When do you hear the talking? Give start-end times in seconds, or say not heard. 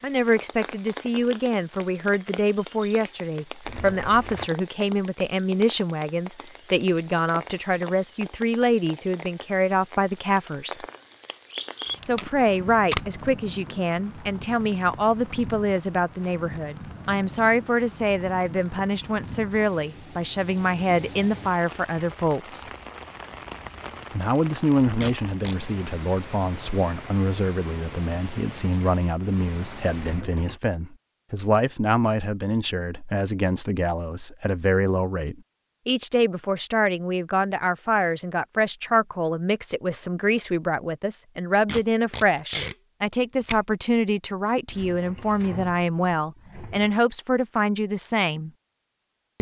0.0-10.8, 12.1-22.7, 24.1-48.5.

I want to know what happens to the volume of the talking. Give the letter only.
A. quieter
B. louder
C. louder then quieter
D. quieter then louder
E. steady
E.